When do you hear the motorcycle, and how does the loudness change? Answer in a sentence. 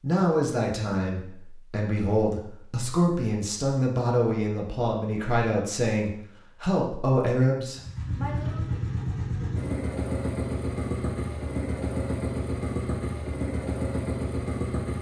The motorcycle can be heard from 7.8 to 14.9 s, at a steady volume.